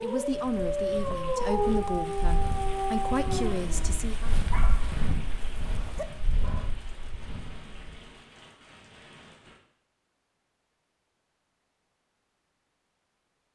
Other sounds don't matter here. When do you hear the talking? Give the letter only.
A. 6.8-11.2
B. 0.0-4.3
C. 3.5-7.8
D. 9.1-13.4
B.